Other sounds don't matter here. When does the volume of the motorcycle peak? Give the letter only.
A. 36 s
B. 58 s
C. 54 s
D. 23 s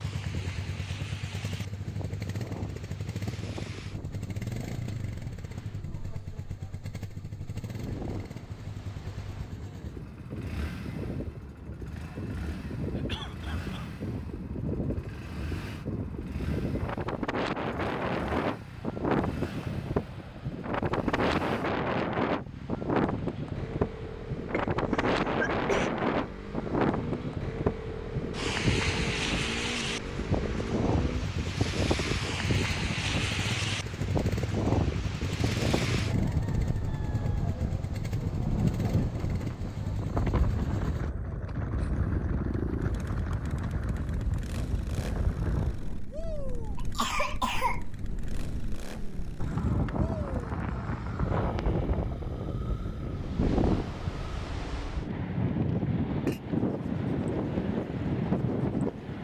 A.